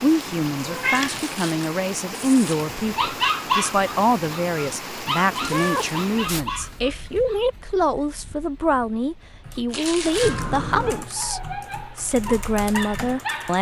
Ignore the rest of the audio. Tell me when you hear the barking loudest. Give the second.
3 s.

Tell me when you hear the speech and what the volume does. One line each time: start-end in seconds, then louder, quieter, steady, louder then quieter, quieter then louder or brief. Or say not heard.
0.0-13.5 steady.